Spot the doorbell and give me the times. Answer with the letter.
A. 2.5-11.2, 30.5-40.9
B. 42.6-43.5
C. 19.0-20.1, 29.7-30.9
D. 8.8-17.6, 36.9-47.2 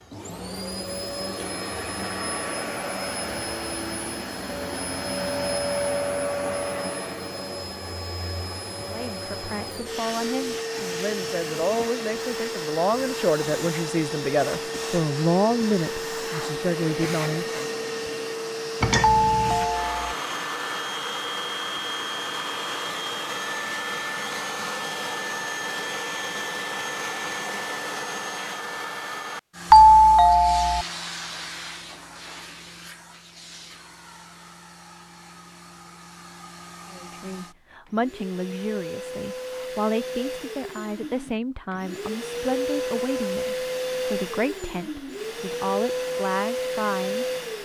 C.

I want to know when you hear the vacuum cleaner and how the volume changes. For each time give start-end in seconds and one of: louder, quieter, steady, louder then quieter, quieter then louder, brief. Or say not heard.
0.0-47.5 quieter then louder.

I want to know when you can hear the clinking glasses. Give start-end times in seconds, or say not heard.
18.8-19.7.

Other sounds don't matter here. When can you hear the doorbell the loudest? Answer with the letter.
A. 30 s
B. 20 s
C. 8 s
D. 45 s
A.